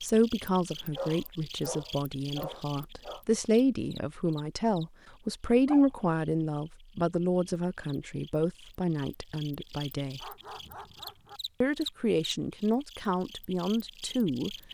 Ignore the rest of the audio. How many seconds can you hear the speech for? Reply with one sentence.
The speech can be heard for 13 seconds in total.